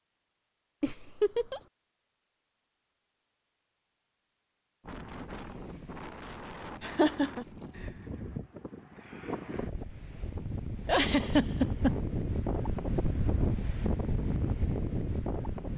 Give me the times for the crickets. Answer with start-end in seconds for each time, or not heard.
not heard.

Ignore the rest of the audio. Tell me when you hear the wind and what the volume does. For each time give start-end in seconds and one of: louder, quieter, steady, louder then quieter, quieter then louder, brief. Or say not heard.
4.8-15.7 louder.